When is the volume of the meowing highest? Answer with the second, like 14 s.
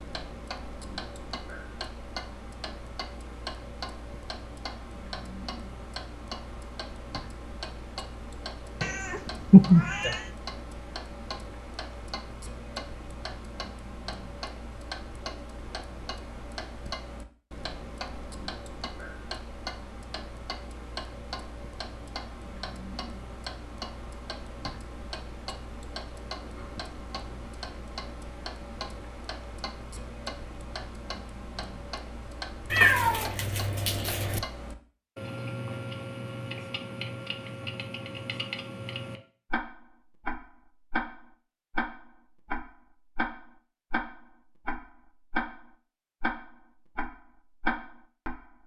10 s.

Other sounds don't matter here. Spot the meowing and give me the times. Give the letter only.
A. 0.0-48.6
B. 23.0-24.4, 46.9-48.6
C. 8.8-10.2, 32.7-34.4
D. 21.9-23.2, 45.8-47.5
C.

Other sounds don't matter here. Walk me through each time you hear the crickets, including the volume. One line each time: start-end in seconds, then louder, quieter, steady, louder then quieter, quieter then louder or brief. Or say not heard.
not heard.